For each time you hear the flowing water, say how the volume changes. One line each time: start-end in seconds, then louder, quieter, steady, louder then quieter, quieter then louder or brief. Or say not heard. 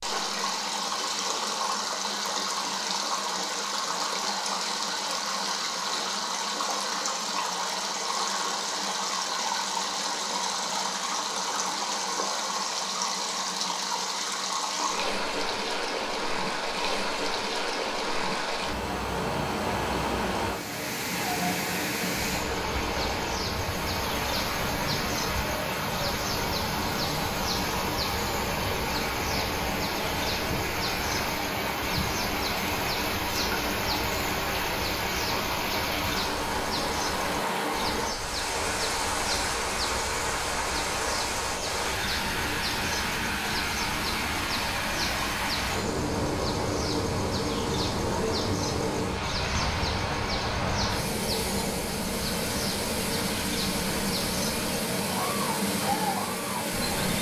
0.0-57.1 steady.